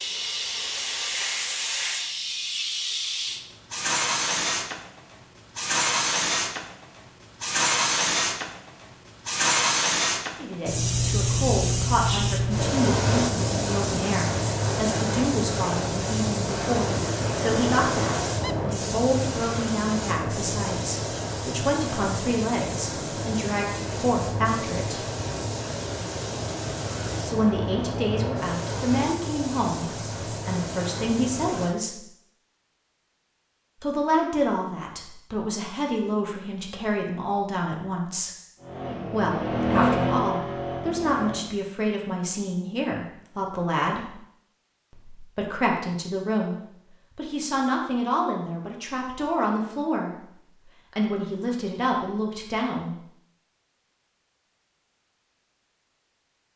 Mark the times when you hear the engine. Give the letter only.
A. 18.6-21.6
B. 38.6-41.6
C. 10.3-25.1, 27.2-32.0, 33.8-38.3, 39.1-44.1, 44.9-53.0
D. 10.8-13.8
B.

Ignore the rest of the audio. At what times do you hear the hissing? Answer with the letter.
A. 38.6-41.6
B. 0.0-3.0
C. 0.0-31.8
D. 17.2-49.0
C.